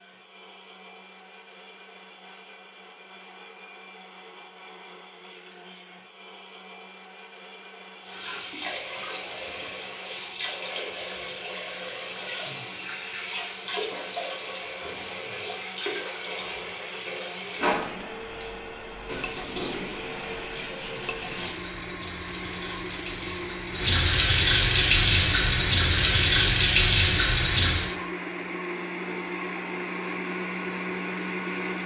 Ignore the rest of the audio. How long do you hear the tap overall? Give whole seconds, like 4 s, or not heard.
20 s.